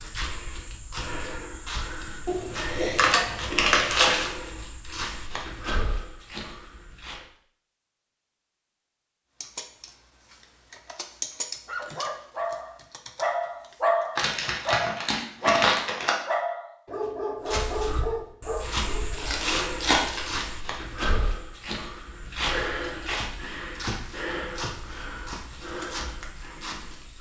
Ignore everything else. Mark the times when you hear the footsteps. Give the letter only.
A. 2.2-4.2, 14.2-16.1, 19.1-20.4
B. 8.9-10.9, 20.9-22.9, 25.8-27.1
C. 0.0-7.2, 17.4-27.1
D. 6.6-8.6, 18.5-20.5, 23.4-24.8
C.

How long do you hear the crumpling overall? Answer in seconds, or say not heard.
5 s.